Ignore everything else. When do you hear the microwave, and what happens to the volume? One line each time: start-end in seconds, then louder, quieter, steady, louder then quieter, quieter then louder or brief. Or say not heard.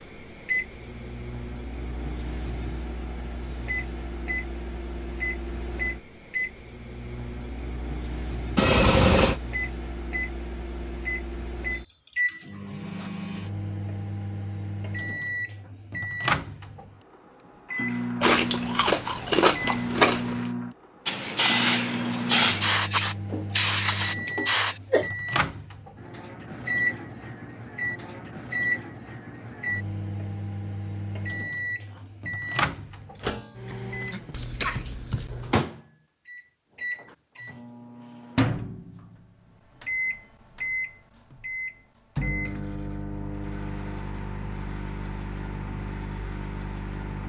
0.0-47.2 steady.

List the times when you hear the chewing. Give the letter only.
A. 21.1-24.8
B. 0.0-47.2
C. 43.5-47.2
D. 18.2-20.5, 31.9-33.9
D.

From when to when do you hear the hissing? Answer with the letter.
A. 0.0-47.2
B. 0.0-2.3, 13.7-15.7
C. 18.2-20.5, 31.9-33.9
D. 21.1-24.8
D.